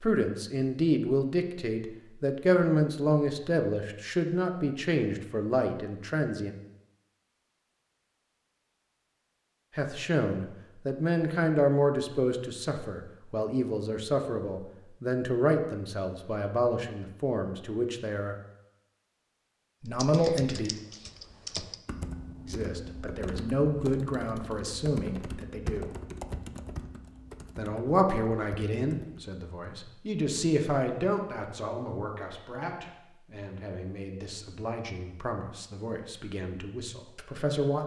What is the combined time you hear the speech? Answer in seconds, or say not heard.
30 s.